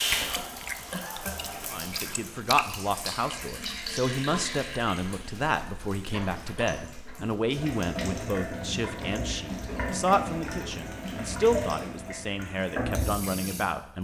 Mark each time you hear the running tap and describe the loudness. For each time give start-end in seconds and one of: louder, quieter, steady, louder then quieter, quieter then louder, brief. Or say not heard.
0.0-13.9 louder.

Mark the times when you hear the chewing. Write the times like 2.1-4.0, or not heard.
0.0-3.9.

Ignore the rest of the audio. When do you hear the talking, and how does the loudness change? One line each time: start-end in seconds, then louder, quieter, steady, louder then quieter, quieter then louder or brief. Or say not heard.
1.7-13.9 steady.